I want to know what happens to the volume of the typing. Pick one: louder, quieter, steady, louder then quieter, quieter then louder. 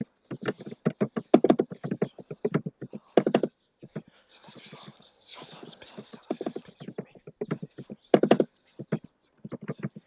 quieter then louder.